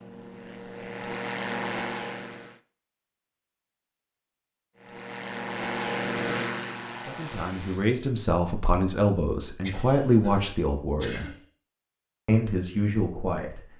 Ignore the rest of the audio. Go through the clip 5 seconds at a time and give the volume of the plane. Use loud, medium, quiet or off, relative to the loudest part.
loud, loud, off.